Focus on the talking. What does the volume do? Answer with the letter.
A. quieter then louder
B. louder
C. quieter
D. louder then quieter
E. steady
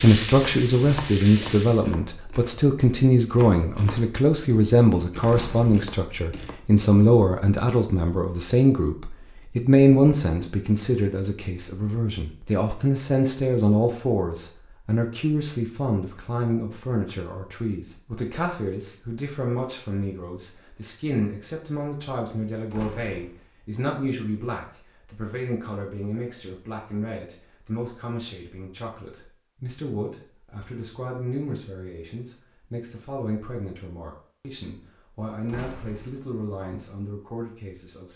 C.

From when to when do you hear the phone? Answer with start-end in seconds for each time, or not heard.
not heard.